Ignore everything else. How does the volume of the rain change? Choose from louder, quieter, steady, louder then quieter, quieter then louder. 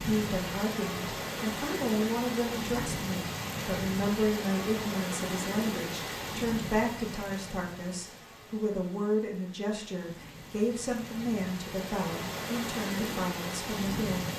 quieter then louder.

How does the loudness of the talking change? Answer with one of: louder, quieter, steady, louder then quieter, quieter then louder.
steady.